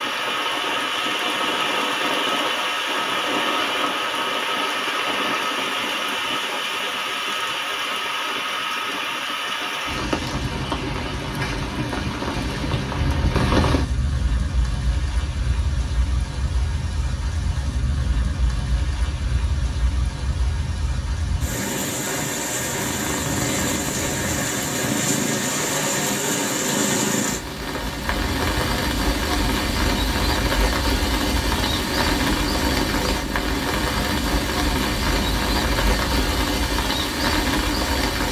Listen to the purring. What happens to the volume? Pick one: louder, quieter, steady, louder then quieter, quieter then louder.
steady.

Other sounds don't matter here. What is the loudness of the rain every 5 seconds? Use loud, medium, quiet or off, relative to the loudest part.
loud, loud, loud, medium, loud, loud, loud, loud.